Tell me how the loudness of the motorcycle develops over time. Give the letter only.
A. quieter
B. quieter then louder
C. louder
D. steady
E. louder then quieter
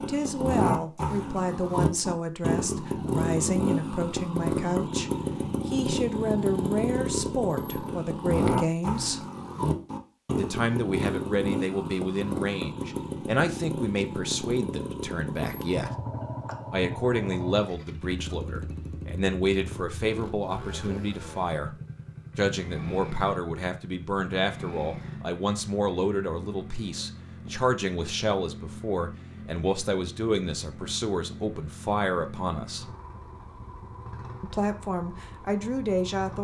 A.